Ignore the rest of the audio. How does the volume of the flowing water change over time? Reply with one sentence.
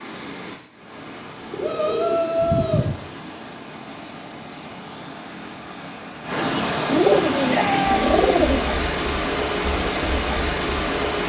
The loudness of the flowing water goes up.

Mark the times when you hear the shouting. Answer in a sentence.
You can hear the shouting from 1.6 to 2.9 s and from 7.3 to 8.2 s.